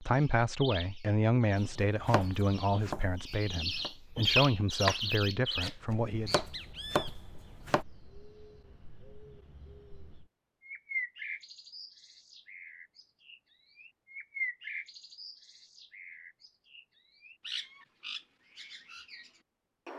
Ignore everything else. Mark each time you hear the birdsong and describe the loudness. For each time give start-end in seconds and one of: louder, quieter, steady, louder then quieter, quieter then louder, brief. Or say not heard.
0.0-19.9 louder then quieter.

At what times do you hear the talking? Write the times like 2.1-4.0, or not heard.
0.0-6.3.